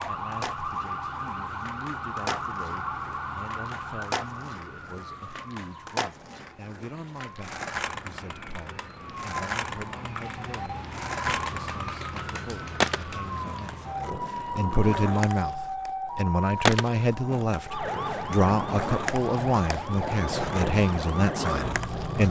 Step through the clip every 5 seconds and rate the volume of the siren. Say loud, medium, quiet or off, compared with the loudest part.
loud, medium, loud, loud, loud.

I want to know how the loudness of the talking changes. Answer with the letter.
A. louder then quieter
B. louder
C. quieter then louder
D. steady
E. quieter
B.